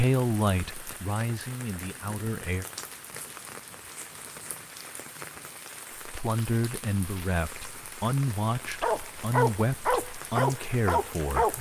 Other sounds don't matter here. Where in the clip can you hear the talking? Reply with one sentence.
The talking can be heard from 0.0 to 2.6 s and from 6.0 to 11.5 s.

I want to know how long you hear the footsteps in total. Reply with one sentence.
You can't hear the footsteps here.